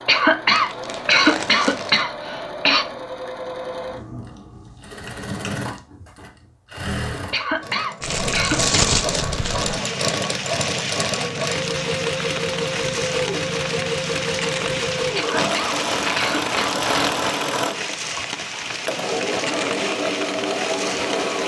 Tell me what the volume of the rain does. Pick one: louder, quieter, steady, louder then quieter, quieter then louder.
steady.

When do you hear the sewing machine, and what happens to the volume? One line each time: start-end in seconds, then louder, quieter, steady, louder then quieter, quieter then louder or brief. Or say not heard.
0.0-21.4 louder.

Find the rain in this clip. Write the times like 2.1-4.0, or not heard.
9.2-21.4.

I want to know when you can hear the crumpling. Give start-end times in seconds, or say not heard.
0.5-2.0, 8.0-9.8, 15.3-17.3.